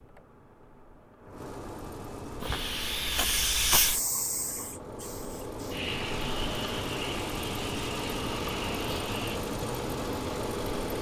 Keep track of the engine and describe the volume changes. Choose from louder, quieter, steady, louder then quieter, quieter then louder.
louder.